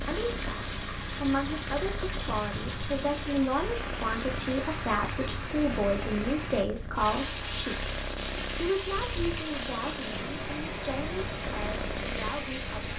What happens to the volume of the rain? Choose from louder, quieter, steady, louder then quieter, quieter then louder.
steady.